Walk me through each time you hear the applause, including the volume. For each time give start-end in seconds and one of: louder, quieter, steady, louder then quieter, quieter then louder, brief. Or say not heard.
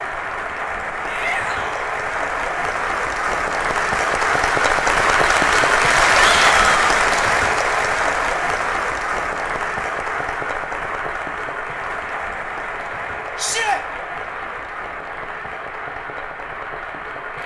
0.0-17.4 louder then quieter.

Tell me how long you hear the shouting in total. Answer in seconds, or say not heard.
2 s.